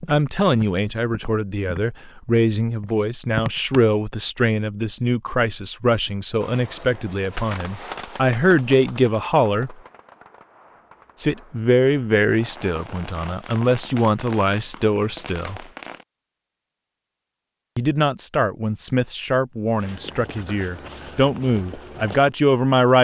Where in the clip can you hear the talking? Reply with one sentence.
The talking can be heard from 0.1 to 9.8 s, from 11.2 to 15.7 s and from 17.8 to 22.9 s.